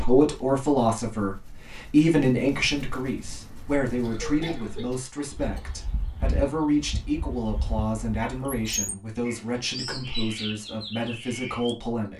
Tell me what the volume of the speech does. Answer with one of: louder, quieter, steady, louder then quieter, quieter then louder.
quieter.